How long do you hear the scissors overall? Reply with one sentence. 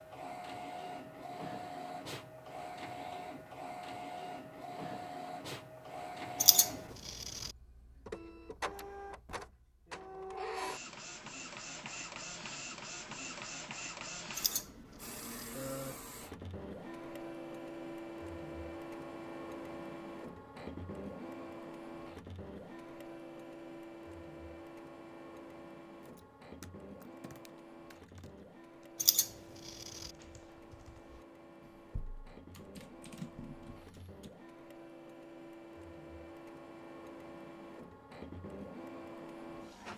You can hear the scissors for 3 seconds altogether.